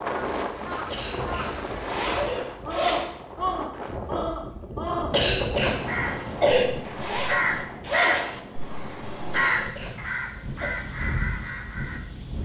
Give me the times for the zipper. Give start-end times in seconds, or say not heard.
1.7-3.0, 6.8-8.3.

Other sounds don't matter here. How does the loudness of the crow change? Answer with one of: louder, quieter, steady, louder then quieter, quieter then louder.
louder then quieter.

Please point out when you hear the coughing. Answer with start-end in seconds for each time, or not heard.
0.9-2.5, 5.1-6.7, 9.3-10.7.